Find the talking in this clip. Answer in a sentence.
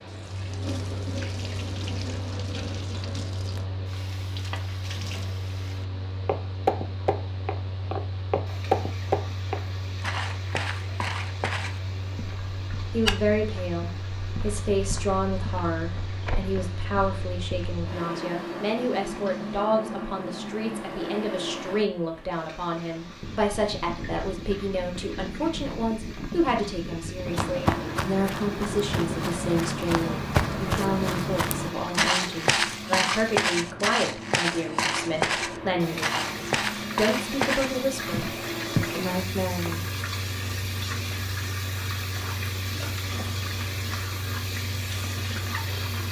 You can hear the talking from 12.9 to 38.2 s and from 38.9 to 39.9 s.